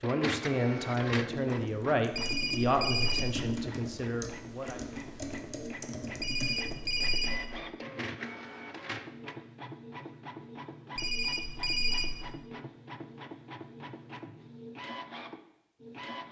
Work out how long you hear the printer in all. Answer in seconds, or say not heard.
16 s.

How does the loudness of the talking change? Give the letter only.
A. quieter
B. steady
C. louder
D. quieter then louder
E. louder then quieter
A.